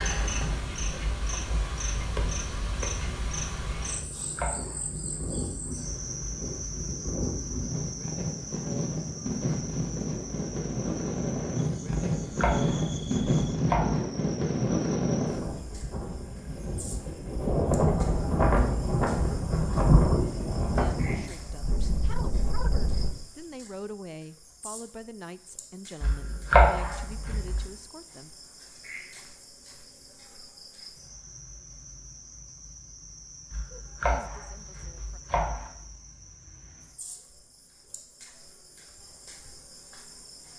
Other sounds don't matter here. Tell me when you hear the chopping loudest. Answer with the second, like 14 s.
27 s.